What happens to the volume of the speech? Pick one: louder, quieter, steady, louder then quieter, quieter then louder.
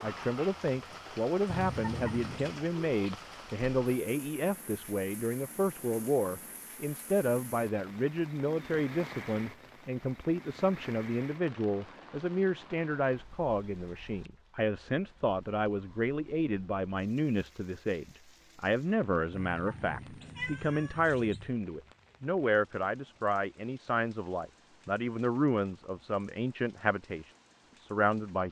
steady.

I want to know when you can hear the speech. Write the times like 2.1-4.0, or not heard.
0.0-28.4.